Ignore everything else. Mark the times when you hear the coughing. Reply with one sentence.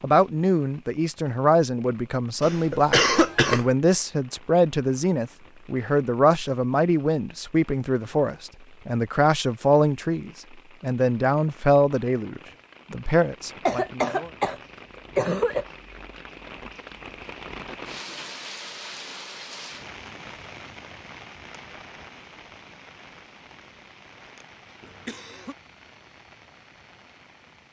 You can hear the coughing from 2.4 to 3.7 s, from 13.7 to 14.6 s, from 15.2 to 15.7 s and from 24.8 to 25.6 s.